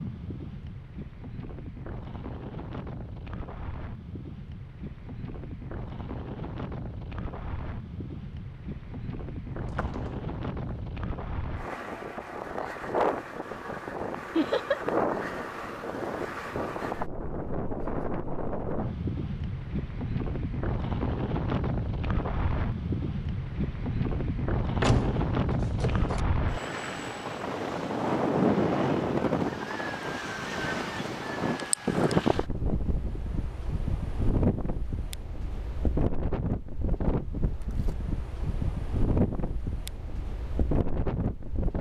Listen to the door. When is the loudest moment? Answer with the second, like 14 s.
25 s.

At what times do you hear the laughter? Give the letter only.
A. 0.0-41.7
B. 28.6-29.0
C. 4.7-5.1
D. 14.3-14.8
D.